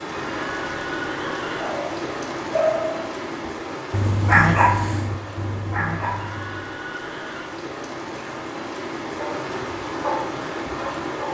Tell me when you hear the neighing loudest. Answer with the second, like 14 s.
1 s.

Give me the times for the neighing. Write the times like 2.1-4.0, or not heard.
0.1-1.8, 6.0-7.5.